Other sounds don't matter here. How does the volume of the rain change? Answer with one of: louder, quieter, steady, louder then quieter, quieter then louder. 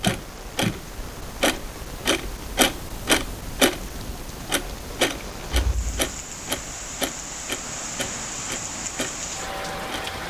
louder.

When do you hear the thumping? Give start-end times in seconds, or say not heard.
0.1-0.8, 5.5-6.2.